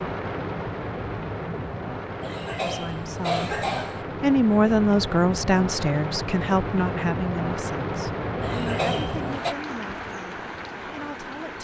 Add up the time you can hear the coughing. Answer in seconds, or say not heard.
3 s.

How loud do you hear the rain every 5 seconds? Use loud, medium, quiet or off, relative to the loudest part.
loud, loud, medium.